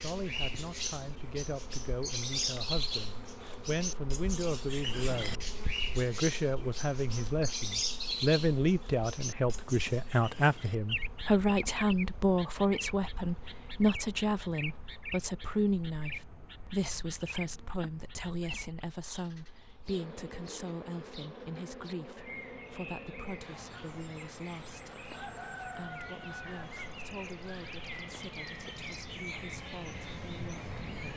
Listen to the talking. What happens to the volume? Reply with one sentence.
The volume of the talking goes up, then down.